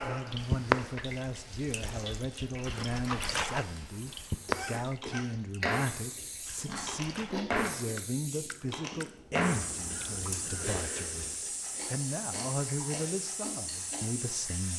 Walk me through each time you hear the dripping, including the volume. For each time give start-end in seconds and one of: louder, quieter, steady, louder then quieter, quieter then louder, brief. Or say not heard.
0.0-10.7 quieter.